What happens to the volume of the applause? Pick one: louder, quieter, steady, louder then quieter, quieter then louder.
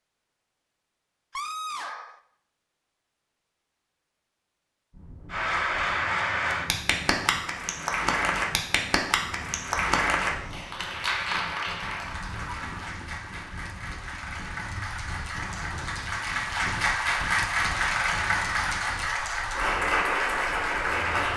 quieter then louder.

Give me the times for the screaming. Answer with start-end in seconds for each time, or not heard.
1.3-2.2, 12.1-12.9.